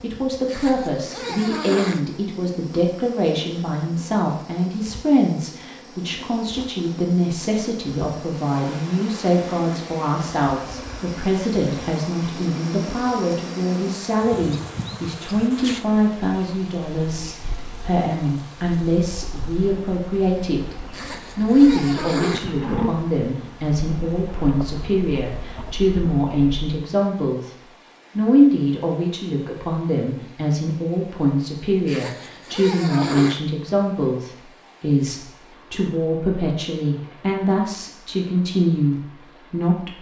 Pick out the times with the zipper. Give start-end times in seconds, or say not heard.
0.5-2.0, 20.9-22.4, 31.9-33.4.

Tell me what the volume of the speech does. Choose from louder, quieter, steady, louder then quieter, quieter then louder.
steady.